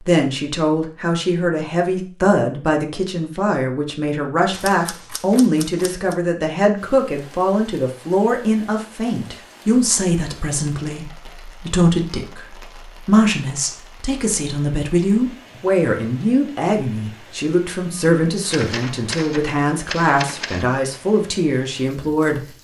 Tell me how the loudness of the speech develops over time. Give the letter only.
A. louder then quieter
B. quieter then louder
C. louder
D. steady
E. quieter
D.